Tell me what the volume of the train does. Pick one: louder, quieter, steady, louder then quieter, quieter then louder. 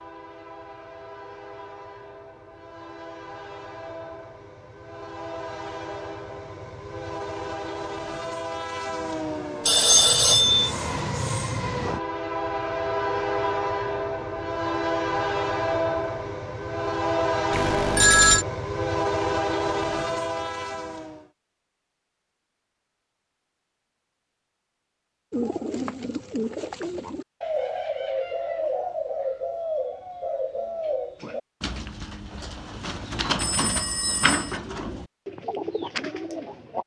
louder.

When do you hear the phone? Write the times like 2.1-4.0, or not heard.
9.7-10.7, 17.5-18.4, 33.4-34.6.